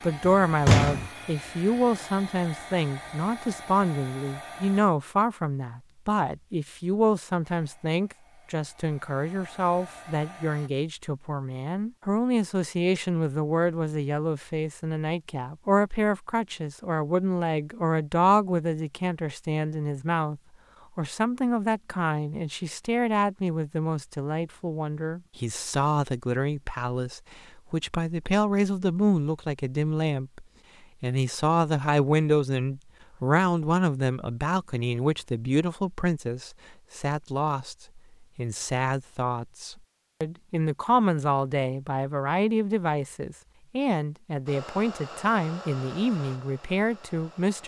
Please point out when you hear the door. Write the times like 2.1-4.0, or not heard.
0.2-1.1.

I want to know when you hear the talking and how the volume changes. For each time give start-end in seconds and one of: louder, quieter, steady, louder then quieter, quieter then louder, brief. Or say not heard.
0.0-47.6 steady.